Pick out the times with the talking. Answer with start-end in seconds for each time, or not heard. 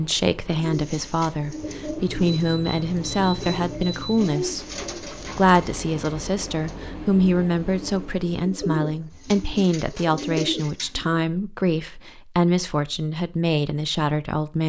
0.0-14.6.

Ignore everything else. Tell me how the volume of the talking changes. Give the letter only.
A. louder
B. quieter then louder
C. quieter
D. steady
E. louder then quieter
D.